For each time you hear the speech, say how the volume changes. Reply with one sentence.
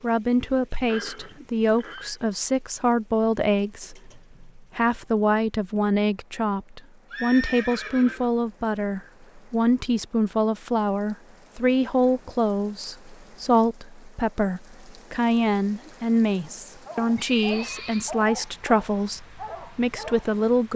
The speech can be heard from 0.0 to 20.7 s, at a steady volume.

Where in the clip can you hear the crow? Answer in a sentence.
You can't hear the crow here.